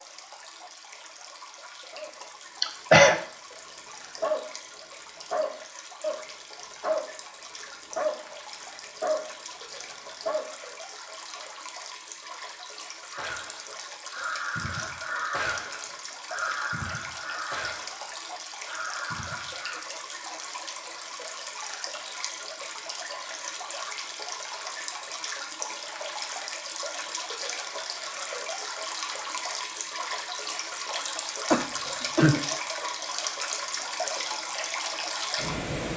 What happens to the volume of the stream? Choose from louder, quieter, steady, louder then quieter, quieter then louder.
louder.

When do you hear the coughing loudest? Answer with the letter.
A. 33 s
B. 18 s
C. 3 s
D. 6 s
C.